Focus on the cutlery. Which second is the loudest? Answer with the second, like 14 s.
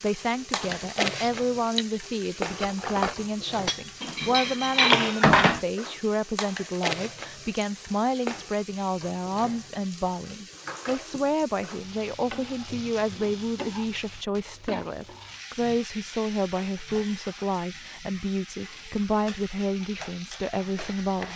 5 s.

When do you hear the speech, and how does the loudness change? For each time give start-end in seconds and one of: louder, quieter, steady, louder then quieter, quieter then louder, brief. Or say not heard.
0.0-21.3 steady.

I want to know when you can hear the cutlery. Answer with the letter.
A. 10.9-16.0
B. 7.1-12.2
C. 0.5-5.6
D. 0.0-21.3
C.